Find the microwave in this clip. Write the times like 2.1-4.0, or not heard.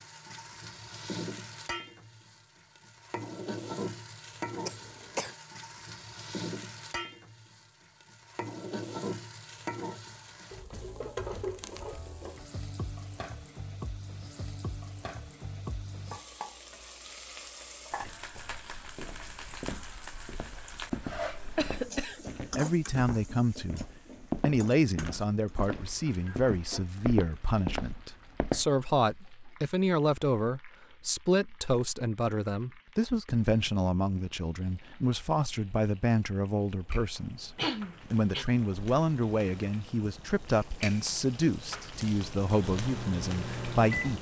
42.4-44.1.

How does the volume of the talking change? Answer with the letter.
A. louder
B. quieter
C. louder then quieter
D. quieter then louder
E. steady
E.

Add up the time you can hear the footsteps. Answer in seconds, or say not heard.
10 s.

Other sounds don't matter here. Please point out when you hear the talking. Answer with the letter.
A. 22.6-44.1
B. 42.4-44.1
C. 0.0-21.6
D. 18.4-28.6
A.